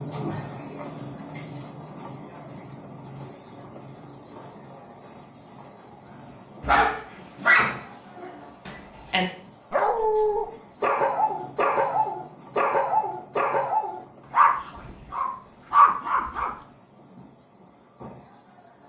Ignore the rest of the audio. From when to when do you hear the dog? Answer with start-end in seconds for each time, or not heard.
6.6-16.5.